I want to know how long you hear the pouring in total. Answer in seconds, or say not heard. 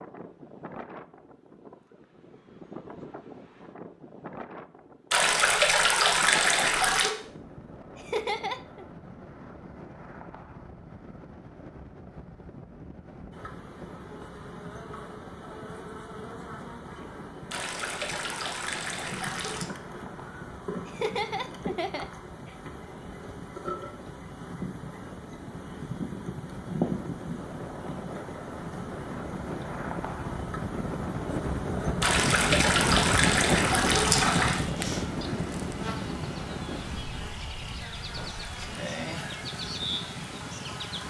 7 s.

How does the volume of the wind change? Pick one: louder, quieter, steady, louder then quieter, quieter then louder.
louder.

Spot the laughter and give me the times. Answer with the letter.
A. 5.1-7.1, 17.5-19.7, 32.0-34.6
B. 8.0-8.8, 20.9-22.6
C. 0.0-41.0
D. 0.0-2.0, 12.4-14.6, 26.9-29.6
B.